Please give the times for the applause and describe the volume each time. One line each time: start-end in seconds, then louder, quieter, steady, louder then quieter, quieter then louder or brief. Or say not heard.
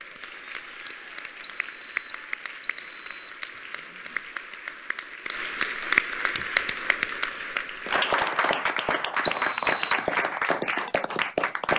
0.0-11.7 louder.